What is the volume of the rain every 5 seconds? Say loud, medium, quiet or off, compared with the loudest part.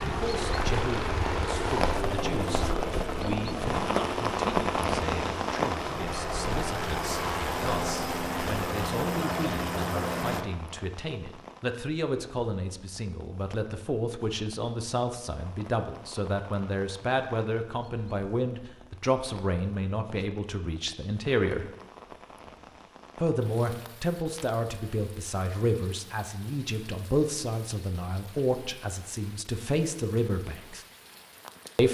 loud, loud, quiet, quiet, quiet, quiet, quiet.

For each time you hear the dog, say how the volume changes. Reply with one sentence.
You can't hear the dog here.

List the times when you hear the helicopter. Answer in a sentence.
The helicopter can be heard from 0.0 to 10.4 s.